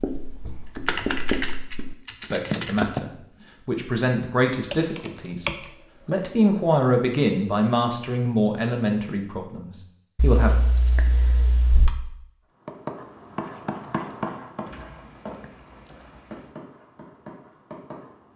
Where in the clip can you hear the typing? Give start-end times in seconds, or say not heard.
0.5-2.8, 4.7-6.2, 10.2-11.9, 15.4-16.4.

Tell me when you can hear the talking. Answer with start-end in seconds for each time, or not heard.
2.2-10.6.